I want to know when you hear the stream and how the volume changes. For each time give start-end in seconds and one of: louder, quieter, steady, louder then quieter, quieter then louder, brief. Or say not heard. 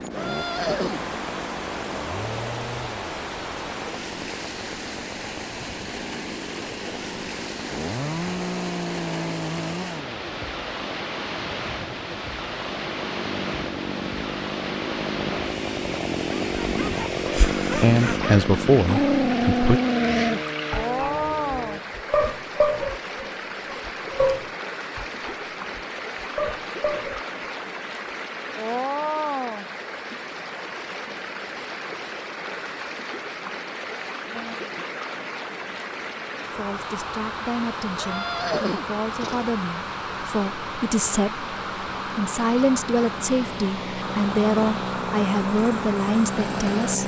0.0-47.0 steady.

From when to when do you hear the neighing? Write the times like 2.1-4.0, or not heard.
0.1-1.0, 38.0-39.5.